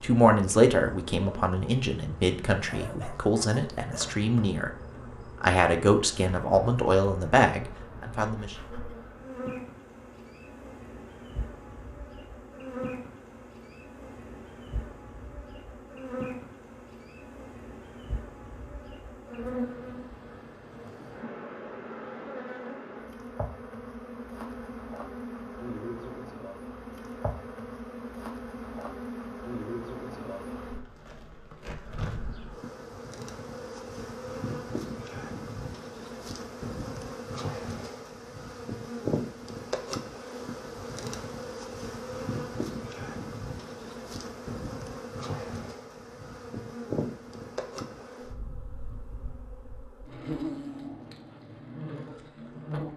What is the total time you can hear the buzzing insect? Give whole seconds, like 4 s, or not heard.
53 s.